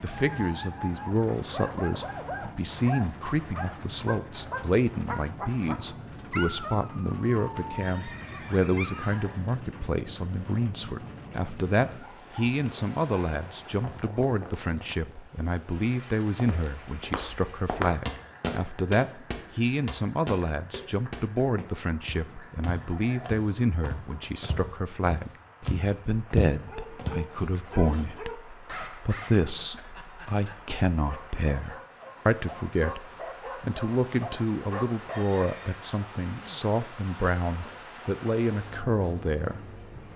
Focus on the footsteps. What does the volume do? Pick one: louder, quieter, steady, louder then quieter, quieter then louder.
quieter then louder.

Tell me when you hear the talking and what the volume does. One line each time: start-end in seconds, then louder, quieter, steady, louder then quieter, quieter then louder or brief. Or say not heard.
0.0-40.1 steady.